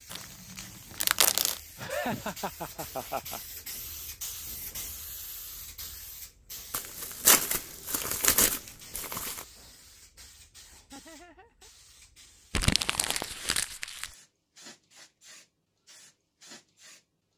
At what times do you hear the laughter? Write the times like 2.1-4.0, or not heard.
1.8-3.4, 10.7-11.7.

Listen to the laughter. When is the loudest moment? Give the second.
2 s.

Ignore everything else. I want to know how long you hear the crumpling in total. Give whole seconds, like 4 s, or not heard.
6 s.